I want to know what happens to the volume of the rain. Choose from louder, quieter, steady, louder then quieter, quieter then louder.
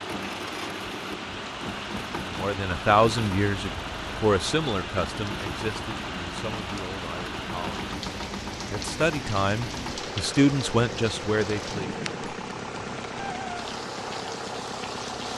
steady.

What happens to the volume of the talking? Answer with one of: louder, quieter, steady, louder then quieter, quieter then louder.
quieter then louder.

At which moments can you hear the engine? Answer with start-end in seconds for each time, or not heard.
0.0-15.3.